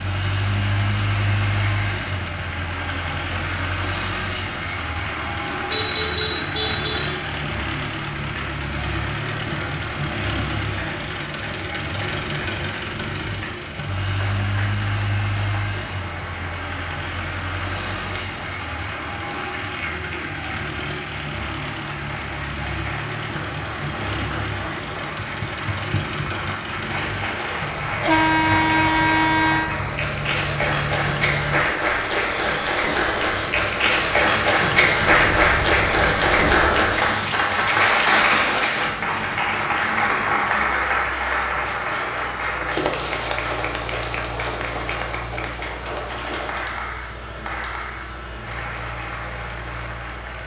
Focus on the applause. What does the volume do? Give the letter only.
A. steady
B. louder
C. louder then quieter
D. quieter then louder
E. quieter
C.